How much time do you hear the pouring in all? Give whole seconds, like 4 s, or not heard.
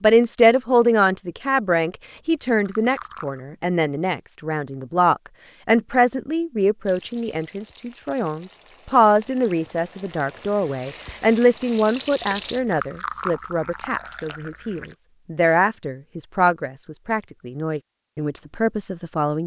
4 s.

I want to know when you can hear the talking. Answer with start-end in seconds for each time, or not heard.
0.0-19.4.